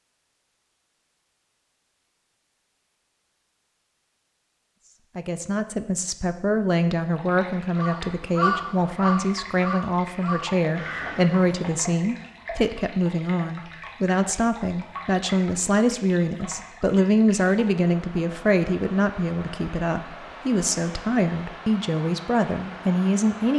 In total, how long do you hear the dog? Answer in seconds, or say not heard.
not heard.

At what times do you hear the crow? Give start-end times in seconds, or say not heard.
7.8-11.7.